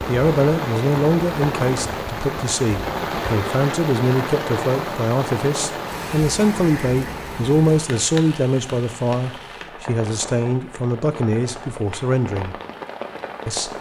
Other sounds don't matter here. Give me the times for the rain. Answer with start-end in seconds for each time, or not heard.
0.0-13.7.